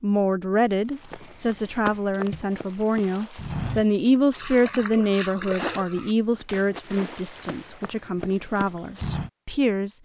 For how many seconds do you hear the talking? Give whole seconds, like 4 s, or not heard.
10 s.